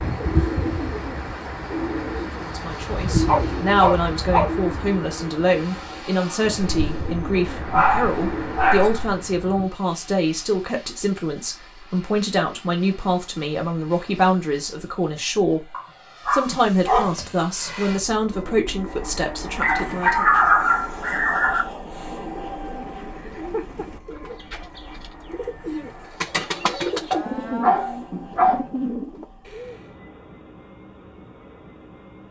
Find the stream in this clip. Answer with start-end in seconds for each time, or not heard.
not heard.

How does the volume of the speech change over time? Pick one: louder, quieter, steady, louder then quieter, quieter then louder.
steady.